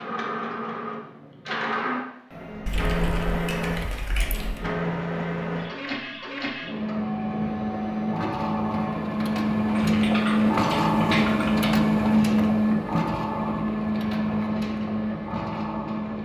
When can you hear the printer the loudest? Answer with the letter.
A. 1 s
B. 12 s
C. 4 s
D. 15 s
B.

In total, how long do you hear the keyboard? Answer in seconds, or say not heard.
4 s.